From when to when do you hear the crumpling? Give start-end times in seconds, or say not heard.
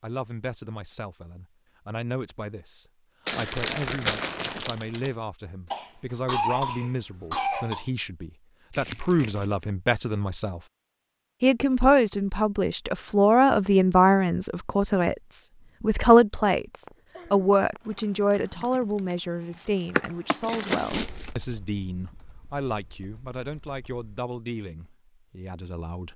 3.2-5.1, 8.7-9.6, 20.5-21.4.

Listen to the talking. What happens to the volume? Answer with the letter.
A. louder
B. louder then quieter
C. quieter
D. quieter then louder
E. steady
B.